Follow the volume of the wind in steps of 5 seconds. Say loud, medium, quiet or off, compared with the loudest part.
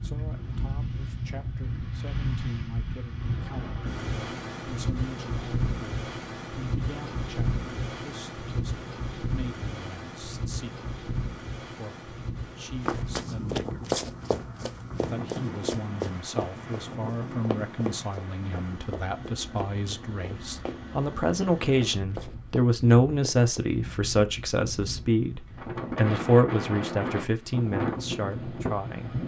loud, loud, medium, medium, medium, loud.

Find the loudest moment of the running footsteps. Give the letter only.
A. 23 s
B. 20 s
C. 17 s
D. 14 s
D.